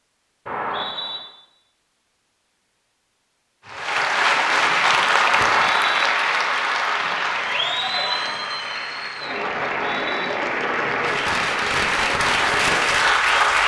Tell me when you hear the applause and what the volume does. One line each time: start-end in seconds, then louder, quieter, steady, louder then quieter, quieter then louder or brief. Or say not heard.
3.6-13.6 quieter then louder.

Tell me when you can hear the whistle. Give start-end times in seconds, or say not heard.
0.5-1.2, 5.3-6.1, 9.6-10.3.